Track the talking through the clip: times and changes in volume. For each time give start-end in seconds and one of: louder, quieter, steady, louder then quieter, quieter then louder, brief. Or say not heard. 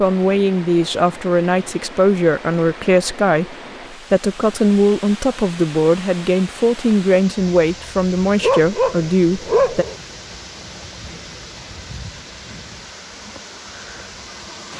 0.0-9.8 steady.